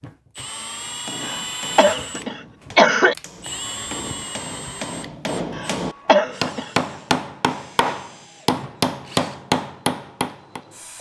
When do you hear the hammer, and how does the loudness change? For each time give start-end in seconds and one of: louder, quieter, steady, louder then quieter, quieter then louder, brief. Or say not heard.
0.8-10.6 louder.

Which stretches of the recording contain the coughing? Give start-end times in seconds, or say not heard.
1.2-3.1, 5.5-6.7.